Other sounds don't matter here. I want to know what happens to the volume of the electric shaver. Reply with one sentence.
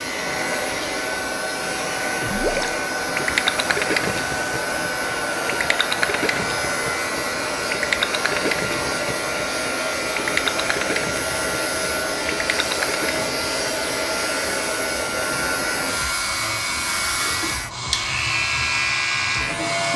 The volume of the electric shaver goes up.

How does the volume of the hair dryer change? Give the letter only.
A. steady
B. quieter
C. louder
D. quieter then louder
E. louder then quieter
A.